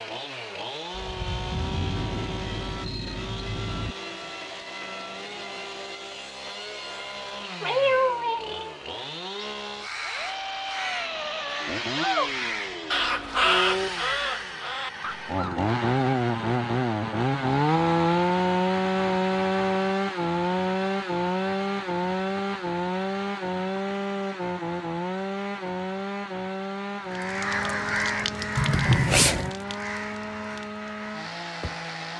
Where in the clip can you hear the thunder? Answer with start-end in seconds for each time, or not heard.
0.9-4.0.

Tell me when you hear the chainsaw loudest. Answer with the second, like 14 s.
18 s.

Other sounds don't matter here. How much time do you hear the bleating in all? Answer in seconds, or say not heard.
not heard.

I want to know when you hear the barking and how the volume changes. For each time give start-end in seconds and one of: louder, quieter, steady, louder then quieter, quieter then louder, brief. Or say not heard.
not heard.